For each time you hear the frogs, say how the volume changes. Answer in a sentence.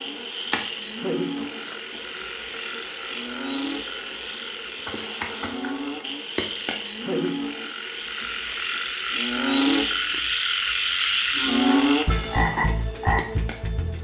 You can hear the frogs from 0.0 to 13.9 s, getting louder.